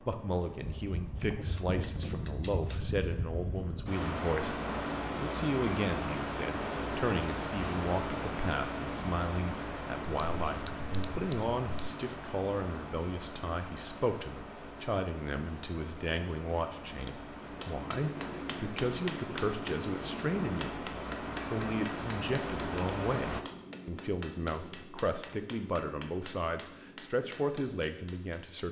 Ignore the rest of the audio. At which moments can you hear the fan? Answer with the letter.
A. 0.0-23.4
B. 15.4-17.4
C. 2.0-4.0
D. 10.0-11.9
A.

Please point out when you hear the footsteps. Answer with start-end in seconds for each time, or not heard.
not heard.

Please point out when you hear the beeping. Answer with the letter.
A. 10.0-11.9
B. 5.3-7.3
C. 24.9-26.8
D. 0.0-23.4
A.